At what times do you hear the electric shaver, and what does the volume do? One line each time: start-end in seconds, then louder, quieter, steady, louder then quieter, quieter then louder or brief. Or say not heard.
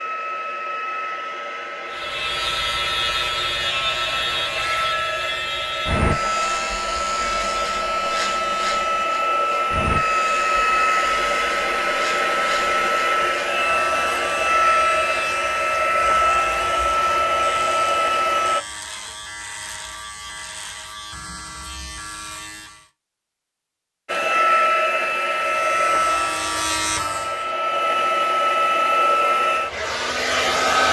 1.9-22.9 quieter
25.4-27.6 brief.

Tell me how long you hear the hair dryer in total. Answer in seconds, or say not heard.
25 s.